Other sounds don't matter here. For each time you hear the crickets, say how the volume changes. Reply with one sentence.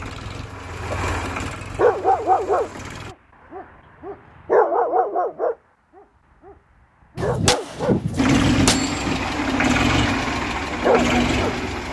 You can't hear the crickets here.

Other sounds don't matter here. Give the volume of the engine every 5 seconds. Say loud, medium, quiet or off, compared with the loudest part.
quiet, loud, loud.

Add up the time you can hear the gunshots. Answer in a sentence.
You can hear the gunshots for 2 seconds altogether.